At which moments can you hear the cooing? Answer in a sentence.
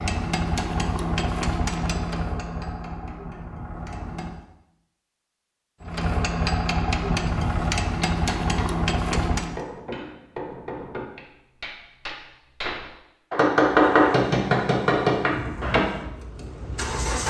You can't hear the cooing here.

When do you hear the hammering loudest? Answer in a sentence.
The loudest moment of the hammering is at 14 seconds.